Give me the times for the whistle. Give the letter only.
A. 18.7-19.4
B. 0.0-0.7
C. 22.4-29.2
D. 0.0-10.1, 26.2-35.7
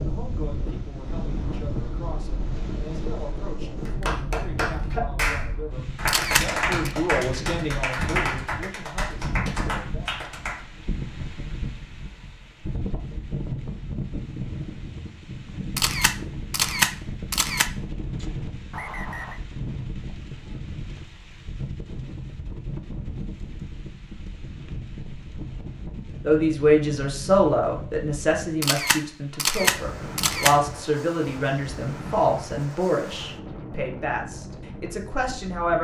A.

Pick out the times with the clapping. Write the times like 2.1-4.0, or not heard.
3.9-10.7.